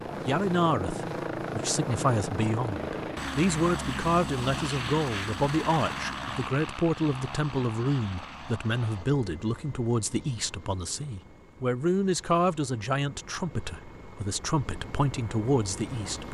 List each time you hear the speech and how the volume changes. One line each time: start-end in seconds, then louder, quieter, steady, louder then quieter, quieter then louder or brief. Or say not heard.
0.2-16.2 steady.